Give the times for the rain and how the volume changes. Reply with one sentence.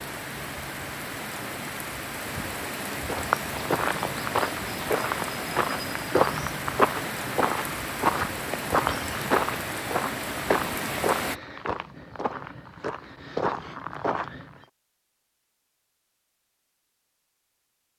You can hear the rain from 0.0 to 11.4 s, at a steady volume.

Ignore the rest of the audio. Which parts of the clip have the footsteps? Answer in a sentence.
You can hear the footsteps from 3.0 to 14.6 s.